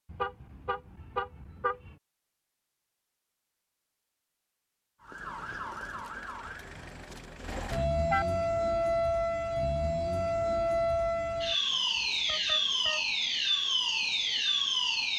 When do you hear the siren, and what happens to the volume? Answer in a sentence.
You can hear the siren from 5.0 to 15.1 s, getting louder.